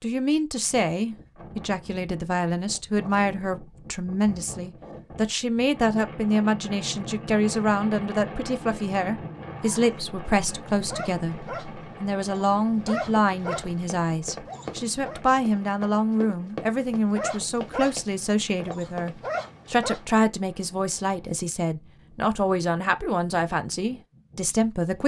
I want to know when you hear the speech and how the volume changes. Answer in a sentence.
The speech can be heard from 0.0 to 25.0 s, at a steady volume.